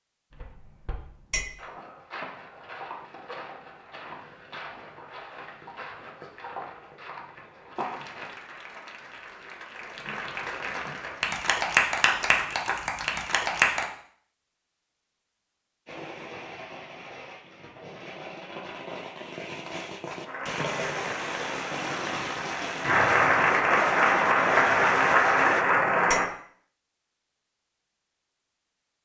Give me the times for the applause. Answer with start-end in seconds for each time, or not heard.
7.8-13.8, 20.2-26.2.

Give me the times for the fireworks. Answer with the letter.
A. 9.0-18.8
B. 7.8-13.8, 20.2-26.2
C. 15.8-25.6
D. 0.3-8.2
C.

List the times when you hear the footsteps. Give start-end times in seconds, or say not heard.
0.3-8.2.